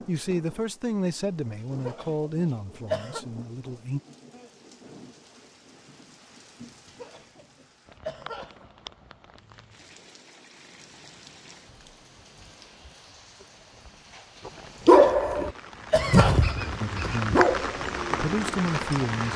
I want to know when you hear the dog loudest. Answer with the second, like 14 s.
15 s.